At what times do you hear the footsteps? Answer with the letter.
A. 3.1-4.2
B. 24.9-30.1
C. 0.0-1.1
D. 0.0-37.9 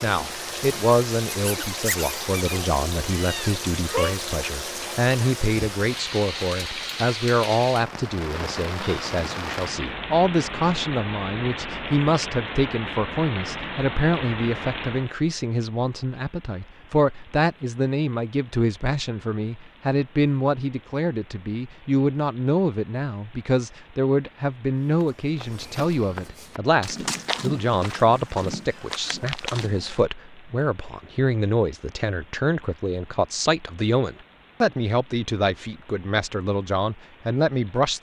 B.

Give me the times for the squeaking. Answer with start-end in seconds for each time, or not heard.
1.3-2.7.